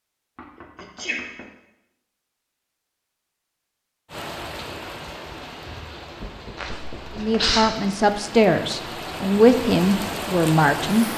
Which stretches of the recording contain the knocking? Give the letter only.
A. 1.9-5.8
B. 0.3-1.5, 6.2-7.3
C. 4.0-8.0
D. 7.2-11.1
B.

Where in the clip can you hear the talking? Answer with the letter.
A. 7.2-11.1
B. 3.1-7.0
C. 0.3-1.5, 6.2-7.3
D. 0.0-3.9
A.